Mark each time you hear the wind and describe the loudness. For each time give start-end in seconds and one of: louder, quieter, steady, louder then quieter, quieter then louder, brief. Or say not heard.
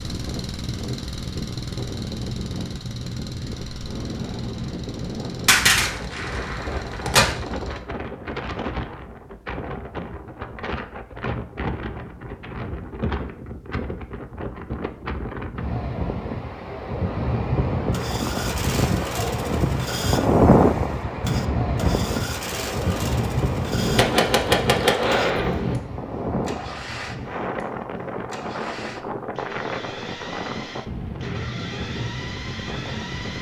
0.0-33.3 louder then quieter.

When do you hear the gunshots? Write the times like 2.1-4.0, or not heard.
5.5-7.3, 23.8-25.8.